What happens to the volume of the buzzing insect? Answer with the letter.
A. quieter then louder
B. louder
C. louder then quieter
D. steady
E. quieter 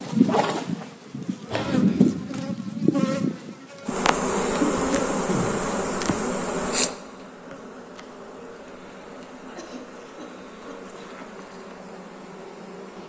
E.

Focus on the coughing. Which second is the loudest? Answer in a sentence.
The volume of the coughing peaks at 5 seconds.